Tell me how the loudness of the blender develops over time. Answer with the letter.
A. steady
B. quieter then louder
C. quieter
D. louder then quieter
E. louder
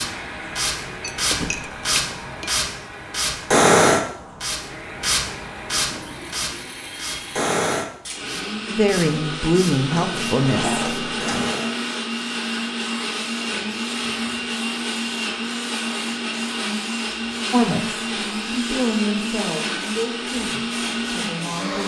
E.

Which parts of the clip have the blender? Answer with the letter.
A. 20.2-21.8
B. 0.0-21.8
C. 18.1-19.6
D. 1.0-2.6
B.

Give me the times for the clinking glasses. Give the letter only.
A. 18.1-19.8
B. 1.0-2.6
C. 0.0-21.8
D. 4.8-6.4
B.